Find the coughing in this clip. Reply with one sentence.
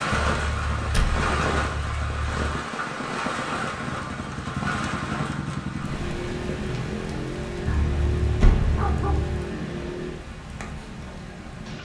The coughing can't be heard in this clip.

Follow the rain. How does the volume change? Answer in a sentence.
The loudness of the rain goes down.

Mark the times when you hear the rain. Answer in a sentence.
You can hear the rain from 0.0 to 11.8 s.